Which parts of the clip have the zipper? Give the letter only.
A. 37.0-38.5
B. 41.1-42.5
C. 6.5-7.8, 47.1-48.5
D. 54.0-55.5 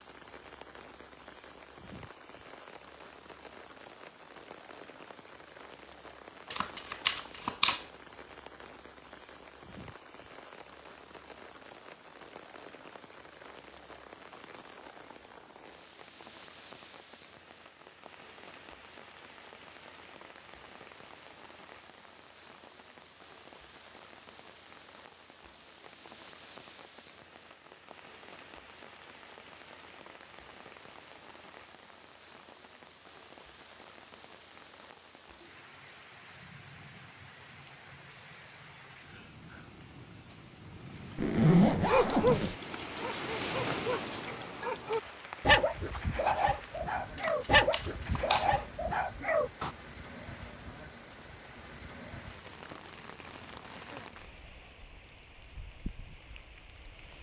B.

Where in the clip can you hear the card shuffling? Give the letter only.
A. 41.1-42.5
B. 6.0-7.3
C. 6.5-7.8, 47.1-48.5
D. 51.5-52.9
C.